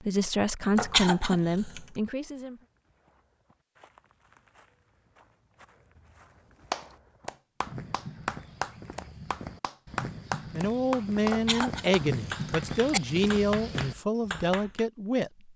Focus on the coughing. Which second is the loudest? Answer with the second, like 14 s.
1 s.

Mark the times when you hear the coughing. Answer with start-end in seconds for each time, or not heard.
0.8-1.8, 11.3-13.0.